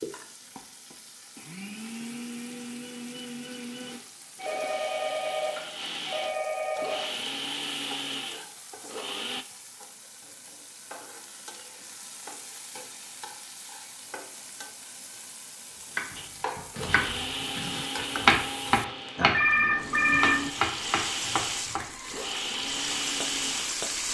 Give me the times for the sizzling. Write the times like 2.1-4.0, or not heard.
0.0-24.0.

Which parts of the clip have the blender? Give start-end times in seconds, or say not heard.
0.0-9.4, 16.1-23.8.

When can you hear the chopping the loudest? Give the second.
18 s.